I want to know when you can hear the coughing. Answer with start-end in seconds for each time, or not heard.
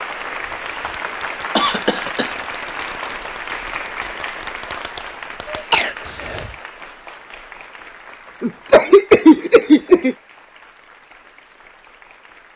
1.6-2.4, 5.5-6.5, 8.4-10.2.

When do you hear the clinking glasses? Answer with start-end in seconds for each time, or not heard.
not heard.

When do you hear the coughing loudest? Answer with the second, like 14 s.
9 s.